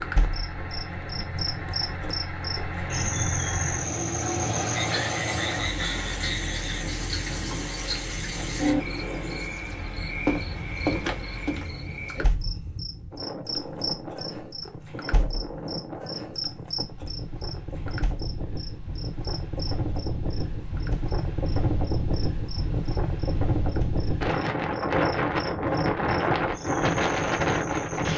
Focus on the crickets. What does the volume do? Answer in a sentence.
The loudness of the crickets goes down.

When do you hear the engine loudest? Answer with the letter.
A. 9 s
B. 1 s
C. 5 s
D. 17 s
C.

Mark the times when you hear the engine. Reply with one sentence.
The engine can be heard from 0.0 to 12.1 s.